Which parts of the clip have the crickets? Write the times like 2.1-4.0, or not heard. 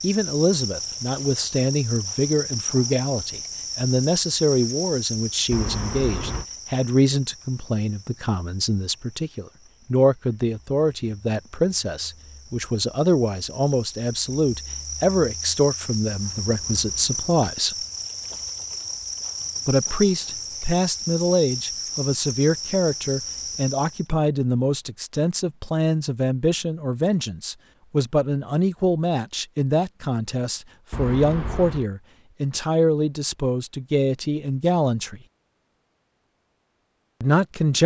0.0-24.1.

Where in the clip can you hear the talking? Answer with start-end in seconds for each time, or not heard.
0.0-17.8, 19.6-35.2, 37.2-37.8.